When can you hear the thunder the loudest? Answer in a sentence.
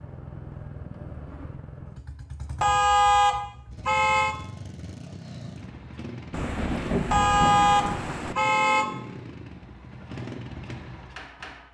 The volume of the thunder peaks at 7 seconds.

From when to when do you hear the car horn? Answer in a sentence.
The car horn can be heard from 2.6 to 4.3 s and from 7.1 to 9.1 s.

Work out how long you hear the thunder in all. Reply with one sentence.
The thunder can be heard for 2 seconds in total.